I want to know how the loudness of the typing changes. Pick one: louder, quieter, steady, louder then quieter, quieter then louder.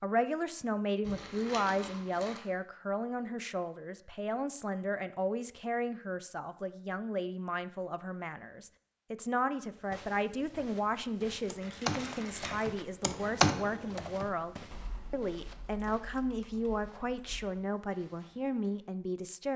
louder then quieter.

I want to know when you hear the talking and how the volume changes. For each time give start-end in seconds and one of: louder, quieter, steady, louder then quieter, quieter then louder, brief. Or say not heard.
0.0-19.5 steady.